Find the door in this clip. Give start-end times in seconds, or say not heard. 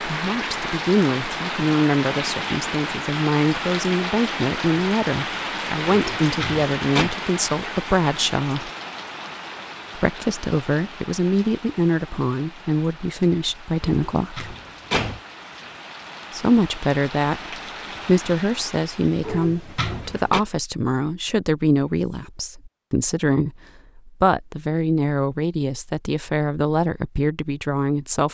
5.8-7.2, 13.8-15.2, 19.2-20.4.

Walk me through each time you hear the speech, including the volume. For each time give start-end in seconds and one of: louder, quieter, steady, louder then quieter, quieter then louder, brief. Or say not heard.
0.1-8.7 steady
9.9-14.6 steady
16.3-28.2 steady.